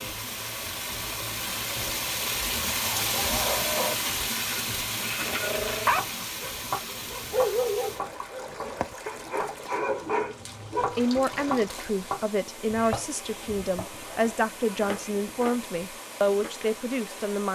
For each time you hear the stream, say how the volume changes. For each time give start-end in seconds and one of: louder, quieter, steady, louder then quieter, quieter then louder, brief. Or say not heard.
0.0-17.4 quieter.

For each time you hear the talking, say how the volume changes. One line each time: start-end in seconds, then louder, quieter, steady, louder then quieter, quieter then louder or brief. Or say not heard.
10.8-17.4 steady.